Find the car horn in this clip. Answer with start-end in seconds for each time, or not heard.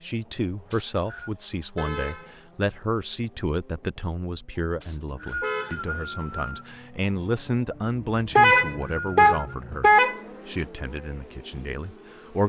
1.8-2.4, 5.4-6.5, 8.3-10.2.